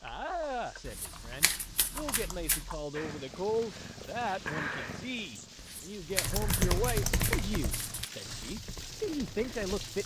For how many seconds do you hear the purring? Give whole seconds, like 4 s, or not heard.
6 s.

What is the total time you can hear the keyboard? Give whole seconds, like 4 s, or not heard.
7 s.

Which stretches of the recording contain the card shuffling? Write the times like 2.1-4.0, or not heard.
0.8-2.6, 5.5-8.1.